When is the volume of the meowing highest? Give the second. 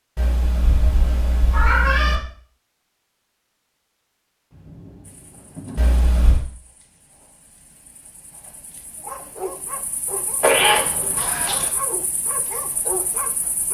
11 s.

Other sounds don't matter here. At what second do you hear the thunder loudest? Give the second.
6 s.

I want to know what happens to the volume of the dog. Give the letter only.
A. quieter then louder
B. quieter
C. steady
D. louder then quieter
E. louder
A.